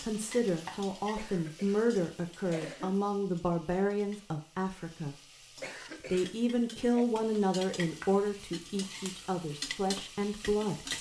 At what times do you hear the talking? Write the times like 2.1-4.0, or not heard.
0.0-5.2, 6.0-10.9.